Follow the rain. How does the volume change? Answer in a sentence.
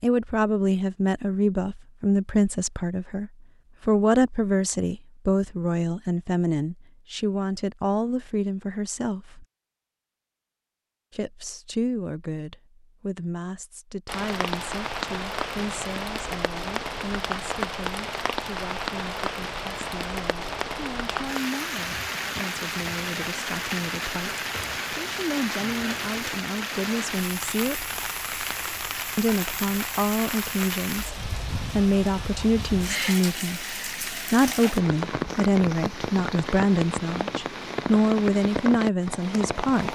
The loudness of the rain stays about the same.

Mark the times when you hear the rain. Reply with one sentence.
You can hear the rain from 14.1 to 39.9 s.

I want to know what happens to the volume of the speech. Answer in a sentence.
The volume of the speech goes down, then up.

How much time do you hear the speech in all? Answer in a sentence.
You can hear the speech for 37 seconds altogether.